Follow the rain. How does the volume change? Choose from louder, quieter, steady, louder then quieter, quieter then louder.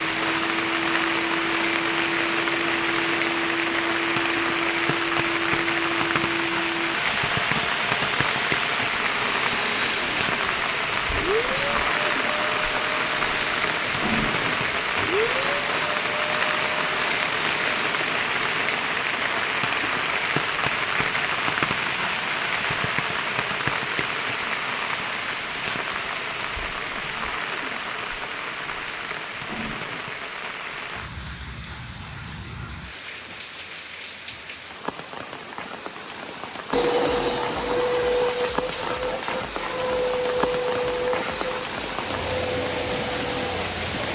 quieter.